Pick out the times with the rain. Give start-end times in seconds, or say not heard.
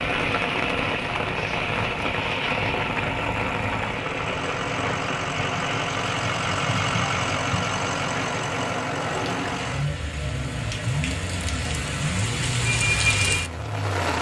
0.0-14.1.